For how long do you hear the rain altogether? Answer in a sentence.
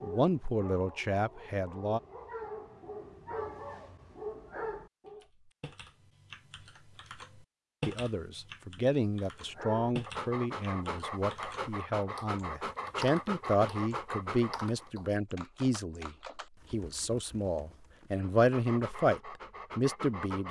The rain can't be heard in this clip.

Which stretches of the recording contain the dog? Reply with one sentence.
You can hear the dog from 0.0 to 5.2 s, from 9.4 to 14.9 s and from 18.2 to 20.4 s.